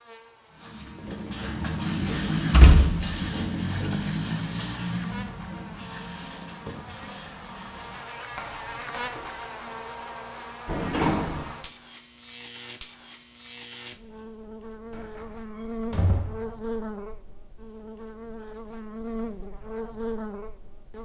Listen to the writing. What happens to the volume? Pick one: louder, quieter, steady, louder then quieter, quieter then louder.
quieter.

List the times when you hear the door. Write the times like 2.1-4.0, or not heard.
2.1-4.0, 10.7-11.5, 14.9-16.4.